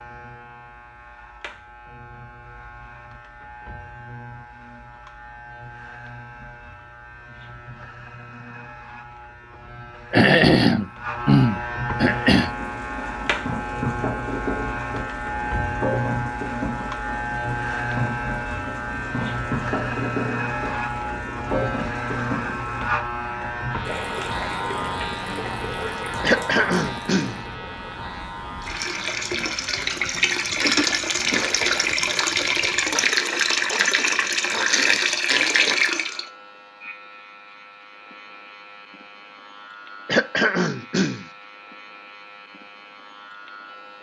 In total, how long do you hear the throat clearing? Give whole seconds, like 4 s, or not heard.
5 s.